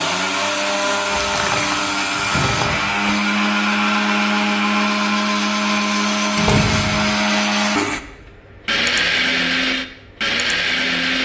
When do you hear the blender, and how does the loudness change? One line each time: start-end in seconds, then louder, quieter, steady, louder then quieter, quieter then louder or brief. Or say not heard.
0.0-11.2 steady.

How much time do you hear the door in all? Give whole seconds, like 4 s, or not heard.
3 s.